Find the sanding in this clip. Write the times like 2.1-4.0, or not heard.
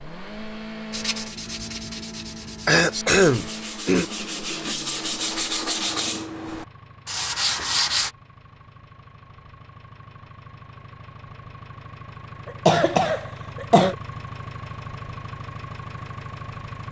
0.9-8.1.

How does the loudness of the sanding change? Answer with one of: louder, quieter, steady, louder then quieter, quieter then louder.
louder.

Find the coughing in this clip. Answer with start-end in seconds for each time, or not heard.
2.6-4.0, 12.4-13.9.